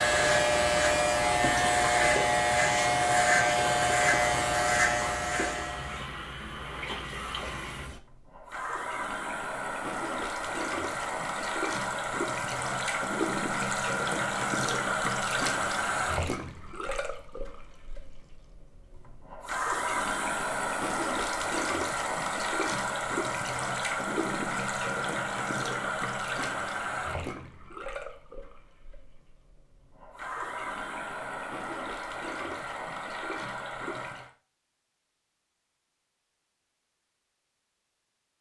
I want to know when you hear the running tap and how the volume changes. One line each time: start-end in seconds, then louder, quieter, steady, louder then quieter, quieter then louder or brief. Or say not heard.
0.1-34.3 louder then quieter.